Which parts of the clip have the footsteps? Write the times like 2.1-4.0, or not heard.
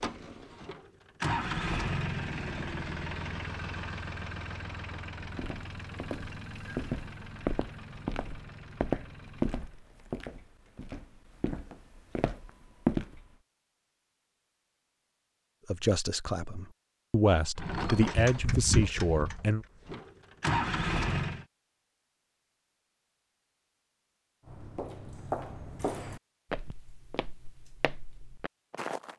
5.2-13.3, 24.4-29.1.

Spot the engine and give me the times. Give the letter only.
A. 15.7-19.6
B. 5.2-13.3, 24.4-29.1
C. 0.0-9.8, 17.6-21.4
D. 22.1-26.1
C.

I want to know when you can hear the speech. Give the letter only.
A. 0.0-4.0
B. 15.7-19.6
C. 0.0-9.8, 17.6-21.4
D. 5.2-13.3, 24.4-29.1
B.